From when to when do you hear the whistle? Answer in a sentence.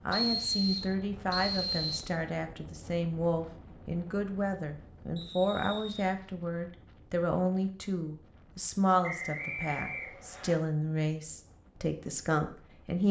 You can hear the whistle from 0.1 to 2.1 s, from 5.2 to 6.0 s and from 9.0 to 10.6 s.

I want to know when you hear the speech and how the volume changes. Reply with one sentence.
You can hear the speech from 0.1 to 13.0 s, at a steady volume.